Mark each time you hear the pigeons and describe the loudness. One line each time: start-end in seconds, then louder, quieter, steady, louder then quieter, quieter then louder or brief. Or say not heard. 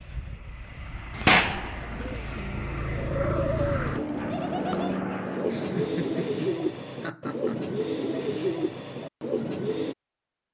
1.1-9.9 louder.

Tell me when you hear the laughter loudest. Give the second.
6 s.